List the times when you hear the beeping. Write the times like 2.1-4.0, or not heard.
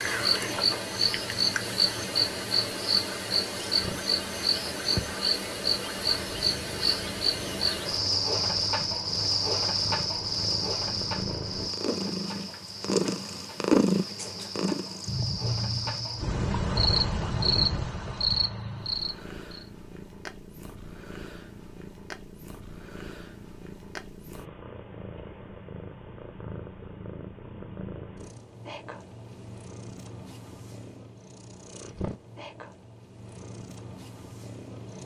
not heard.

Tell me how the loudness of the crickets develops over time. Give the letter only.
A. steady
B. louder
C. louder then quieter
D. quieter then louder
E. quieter
D.